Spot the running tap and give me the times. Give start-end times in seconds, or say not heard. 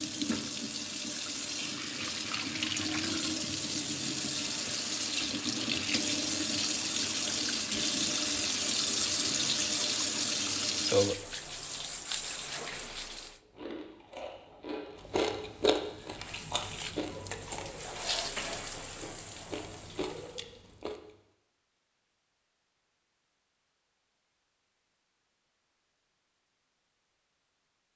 0.0-13.4, 15.8-20.4.